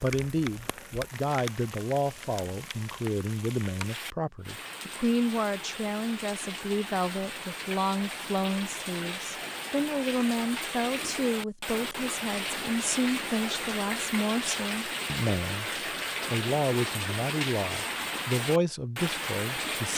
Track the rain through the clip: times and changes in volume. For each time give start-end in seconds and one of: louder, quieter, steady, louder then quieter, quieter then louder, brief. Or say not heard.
0.0-19.9 louder.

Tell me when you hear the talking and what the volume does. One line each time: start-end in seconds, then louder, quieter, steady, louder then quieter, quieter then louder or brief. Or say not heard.
0.0-19.9 steady.